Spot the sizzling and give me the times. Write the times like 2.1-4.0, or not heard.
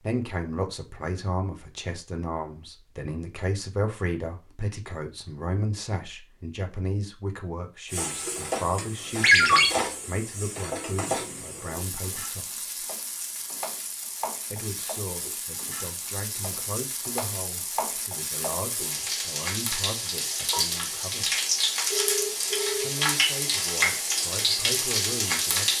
7.8-25.7.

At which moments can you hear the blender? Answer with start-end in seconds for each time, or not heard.
not heard.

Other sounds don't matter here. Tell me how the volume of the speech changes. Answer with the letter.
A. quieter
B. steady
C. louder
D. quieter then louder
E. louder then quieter
A.